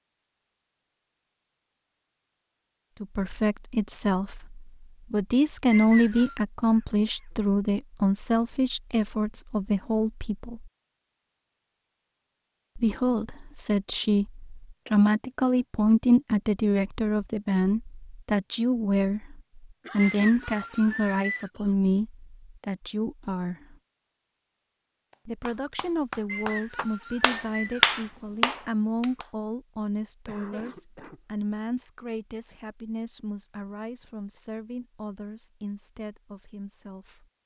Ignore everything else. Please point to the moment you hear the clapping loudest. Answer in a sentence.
The volume of the clapping peaks at 28 seconds.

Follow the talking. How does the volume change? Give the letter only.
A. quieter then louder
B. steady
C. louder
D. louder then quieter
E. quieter
E.